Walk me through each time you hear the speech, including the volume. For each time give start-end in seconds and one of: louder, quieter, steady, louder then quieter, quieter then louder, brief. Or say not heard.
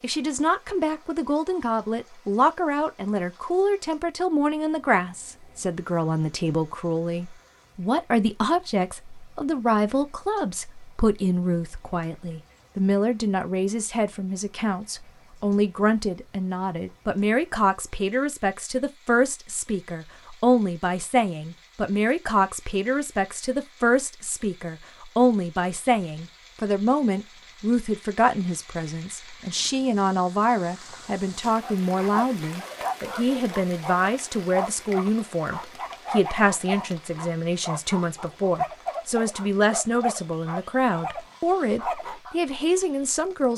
0.0-43.5 steady.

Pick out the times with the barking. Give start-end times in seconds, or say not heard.
31.6-42.4.